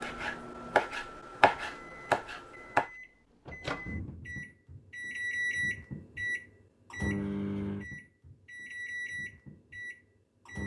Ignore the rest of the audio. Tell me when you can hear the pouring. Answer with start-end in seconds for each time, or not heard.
not heard.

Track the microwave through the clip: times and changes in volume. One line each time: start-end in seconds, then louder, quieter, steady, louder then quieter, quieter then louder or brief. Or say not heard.
0.0-10.6 louder then quieter.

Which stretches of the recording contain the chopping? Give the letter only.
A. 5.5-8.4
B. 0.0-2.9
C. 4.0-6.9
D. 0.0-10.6
B.